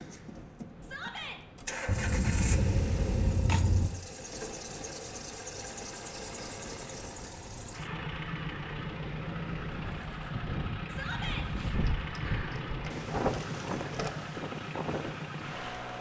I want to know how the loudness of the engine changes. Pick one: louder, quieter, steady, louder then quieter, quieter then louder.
steady.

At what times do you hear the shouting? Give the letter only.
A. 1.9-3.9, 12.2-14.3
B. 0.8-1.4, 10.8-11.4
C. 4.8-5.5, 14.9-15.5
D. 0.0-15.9
B.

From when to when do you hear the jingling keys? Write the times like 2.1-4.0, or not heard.
1.9-3.9, 12.2-14.3.